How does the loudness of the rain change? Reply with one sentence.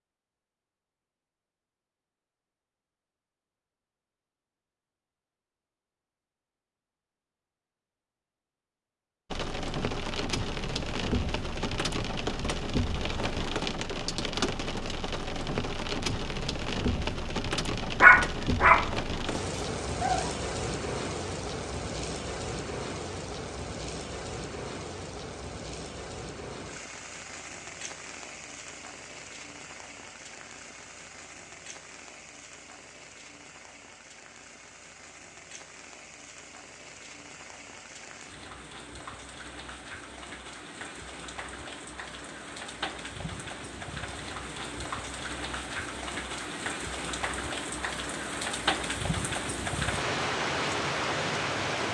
The loudness of the rain goes down, then up.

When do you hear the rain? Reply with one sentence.
You can hear the rain from 9.3 to 51.9 s.